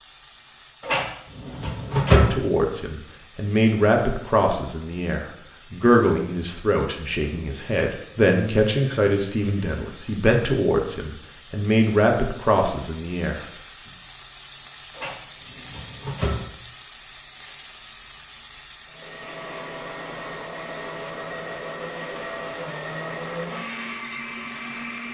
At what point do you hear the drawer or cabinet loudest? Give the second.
2 s.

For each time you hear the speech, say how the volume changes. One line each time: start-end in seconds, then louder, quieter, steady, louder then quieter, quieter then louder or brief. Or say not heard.
2.1-13.4 steady.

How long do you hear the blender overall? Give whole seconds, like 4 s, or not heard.
6 s.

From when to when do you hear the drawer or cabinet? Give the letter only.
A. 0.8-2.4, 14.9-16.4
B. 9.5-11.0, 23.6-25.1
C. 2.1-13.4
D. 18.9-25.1
A.